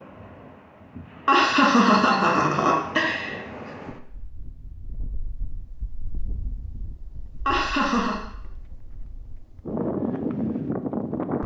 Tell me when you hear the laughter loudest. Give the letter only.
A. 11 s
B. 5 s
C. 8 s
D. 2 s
D.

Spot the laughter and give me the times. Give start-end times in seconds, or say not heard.
1.2-3.4, 7.5-8.2.